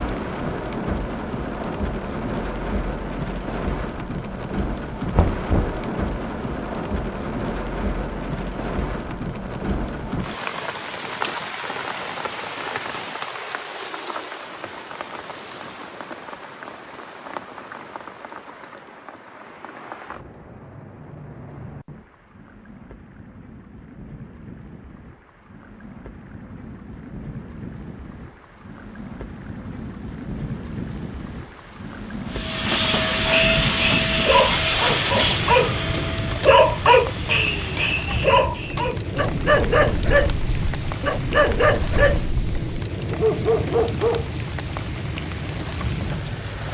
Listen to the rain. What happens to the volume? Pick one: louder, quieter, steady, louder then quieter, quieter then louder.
quieter then louder.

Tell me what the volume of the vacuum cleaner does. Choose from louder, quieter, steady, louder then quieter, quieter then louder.
quieter.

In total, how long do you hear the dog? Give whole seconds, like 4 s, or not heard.
11 s.